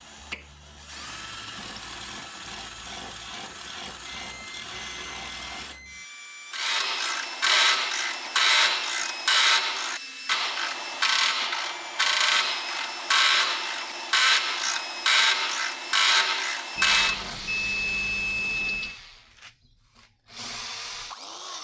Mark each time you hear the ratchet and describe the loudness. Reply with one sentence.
The ratchet can be heard from 6.5 to 17.4 s, at a steady volume.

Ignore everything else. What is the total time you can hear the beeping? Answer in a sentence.
The beeping can be heard for 4 seconds in total.